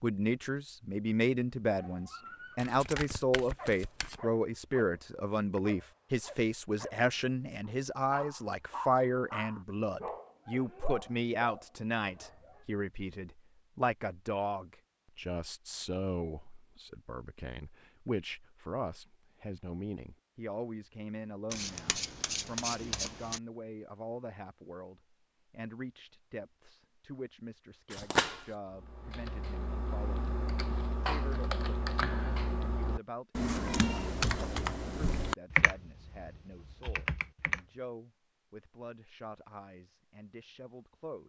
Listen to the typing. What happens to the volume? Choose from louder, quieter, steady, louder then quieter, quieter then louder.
louder then quieter.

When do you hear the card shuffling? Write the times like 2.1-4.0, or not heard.
2.5-4.2, 21.5-23.4, 27.9-28.6.